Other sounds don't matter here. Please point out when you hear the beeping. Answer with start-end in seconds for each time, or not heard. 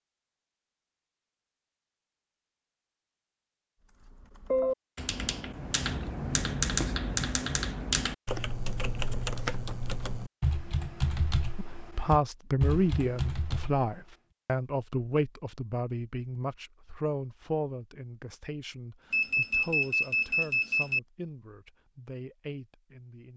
19.1-21.0.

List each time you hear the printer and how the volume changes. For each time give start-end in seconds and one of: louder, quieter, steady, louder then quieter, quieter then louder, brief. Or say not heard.
not heard.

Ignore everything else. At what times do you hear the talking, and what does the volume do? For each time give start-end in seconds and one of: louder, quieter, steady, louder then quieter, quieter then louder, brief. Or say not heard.
11.6-23.3 quieter.